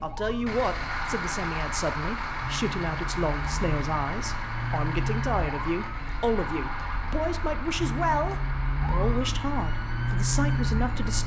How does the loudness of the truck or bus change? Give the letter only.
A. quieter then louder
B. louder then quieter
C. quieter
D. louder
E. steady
C.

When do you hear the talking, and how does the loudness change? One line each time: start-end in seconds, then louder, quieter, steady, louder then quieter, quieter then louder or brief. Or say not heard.
0.0-11.2 steady.